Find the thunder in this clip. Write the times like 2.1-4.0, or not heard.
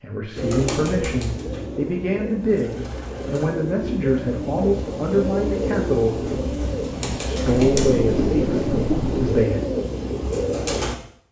7.5-9.4.